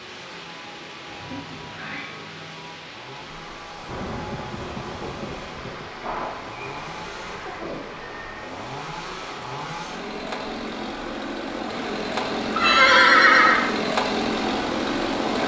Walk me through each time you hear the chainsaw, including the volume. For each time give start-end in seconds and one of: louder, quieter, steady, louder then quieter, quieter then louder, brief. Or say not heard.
0.0-15.4 louder.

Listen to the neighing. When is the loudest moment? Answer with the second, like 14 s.
13 s.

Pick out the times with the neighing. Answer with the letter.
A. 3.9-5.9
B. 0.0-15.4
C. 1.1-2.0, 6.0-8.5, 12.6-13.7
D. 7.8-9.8
C.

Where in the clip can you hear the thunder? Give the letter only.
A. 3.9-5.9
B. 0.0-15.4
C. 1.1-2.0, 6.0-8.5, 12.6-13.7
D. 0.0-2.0
A.